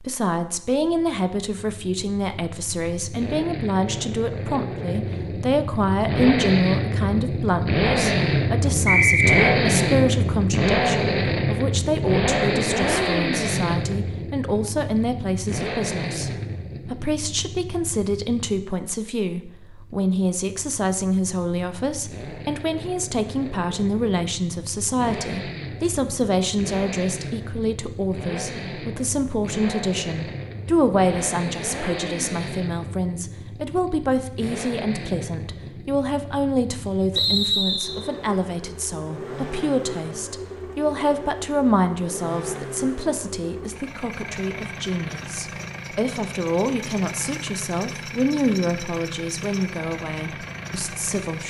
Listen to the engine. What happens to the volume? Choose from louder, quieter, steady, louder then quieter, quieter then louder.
quieter.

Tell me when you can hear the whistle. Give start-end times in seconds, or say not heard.
8.8-9.6, 37.1-38.0.